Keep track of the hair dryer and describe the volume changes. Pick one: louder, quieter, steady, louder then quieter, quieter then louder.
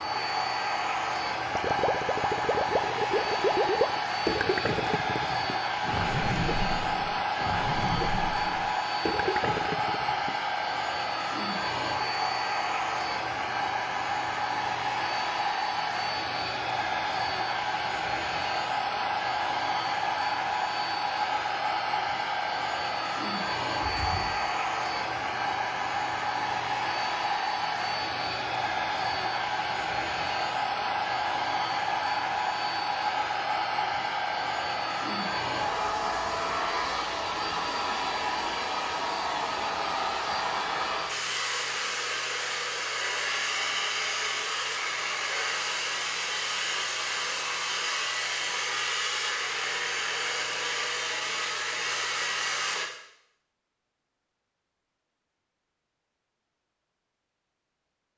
steady.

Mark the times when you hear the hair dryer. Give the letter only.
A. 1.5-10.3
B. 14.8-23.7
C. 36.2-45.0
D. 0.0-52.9
D.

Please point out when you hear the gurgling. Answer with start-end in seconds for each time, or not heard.
1.5-10.3.